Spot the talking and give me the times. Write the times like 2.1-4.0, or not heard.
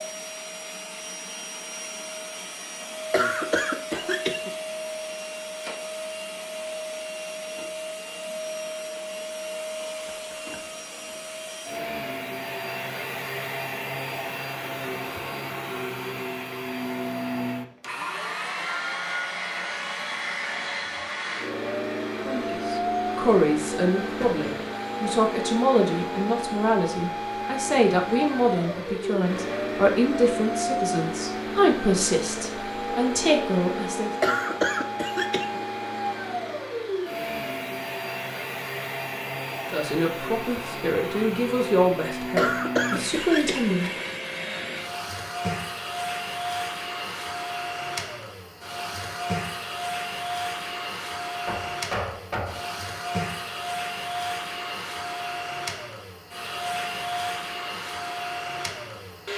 22.1-34.1, 39.7-43.9.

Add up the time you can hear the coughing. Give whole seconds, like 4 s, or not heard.
4 s.